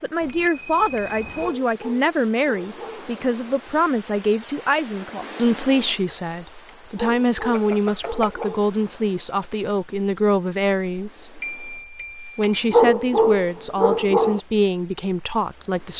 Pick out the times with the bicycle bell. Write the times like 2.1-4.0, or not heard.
0.2-1.6, 7.5-8.4, 11.4-12.8.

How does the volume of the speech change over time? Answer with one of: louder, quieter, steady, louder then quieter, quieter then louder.
steady.